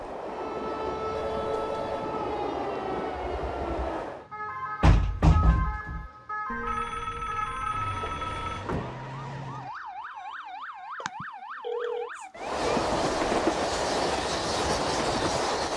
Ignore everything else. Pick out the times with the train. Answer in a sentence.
You can hear the train from 0.0 to 4.3 s and from 12.3 to 15.7 s.